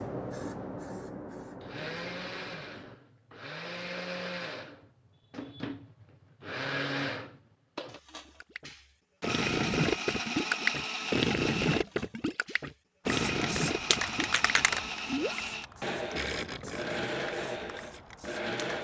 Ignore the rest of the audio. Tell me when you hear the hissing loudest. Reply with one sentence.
The loudest moment of the hissing is at 14 seconds.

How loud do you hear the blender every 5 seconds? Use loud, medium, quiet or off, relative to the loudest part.
medium, loud, loud, loud.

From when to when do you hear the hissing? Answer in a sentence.
You can hear the hissing from 0.0 to 3.0 s and from 13.1 to 18.6 s.